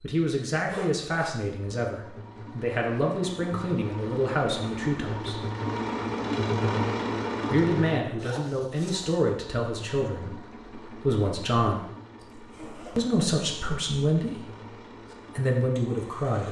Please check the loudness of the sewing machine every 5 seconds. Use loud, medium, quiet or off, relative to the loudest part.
medium, loud, quiet, quiet.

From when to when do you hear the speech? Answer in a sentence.
The speech can be heard from 0.0 to 5.4 s, from 7.5 to 11.8 s, from 12.9 to 14.6 s and from 15.3 to 16.4 s.